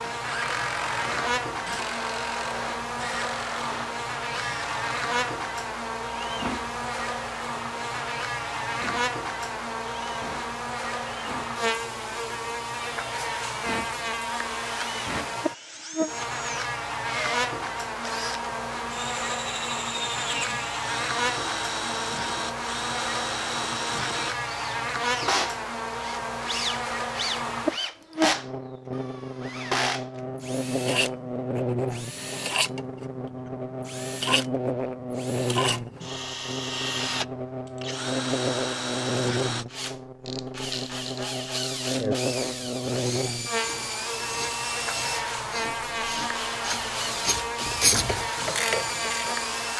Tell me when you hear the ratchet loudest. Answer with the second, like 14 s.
48 s.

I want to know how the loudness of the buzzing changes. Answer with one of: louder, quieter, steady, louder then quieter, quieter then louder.
steady.